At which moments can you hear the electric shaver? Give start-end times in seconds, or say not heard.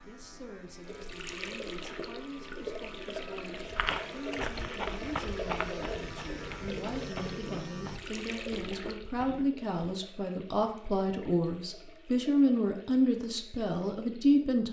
0.0-8.0.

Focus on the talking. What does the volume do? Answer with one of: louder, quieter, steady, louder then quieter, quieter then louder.
louder.